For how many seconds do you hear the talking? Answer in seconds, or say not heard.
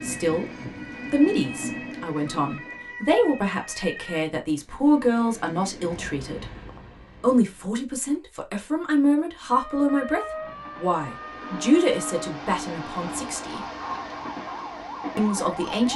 13 s.